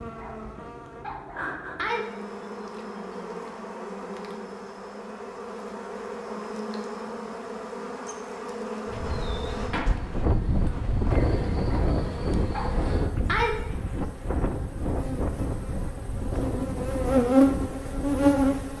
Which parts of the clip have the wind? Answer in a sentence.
The wind can be heard from 8.8 to 18.7 s.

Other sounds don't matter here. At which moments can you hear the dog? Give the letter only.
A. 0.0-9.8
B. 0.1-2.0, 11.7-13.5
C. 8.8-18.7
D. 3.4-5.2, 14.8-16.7
B.